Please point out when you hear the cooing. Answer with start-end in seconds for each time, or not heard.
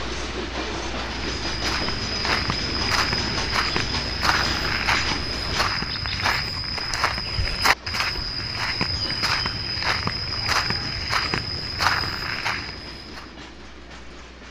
not heard.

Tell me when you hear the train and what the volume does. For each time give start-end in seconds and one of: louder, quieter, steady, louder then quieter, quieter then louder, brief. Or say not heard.
0.0-14.4 quieter.